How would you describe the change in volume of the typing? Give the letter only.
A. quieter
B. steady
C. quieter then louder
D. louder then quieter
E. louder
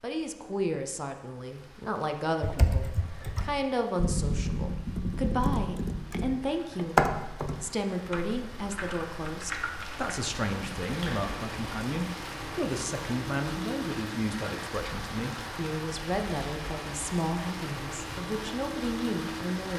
D.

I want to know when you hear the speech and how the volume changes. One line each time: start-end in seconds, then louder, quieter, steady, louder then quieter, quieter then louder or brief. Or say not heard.
0.0-19.7 steady.